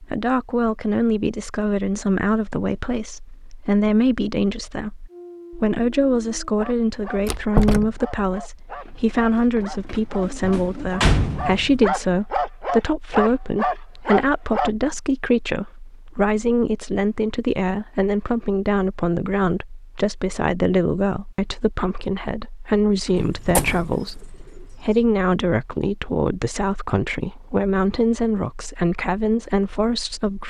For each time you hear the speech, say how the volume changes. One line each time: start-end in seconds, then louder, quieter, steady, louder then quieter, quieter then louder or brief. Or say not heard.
0.0-30.4 steady.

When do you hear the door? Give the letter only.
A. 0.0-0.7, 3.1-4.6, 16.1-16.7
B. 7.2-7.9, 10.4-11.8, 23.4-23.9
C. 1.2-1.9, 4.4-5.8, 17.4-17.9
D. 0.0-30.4
B.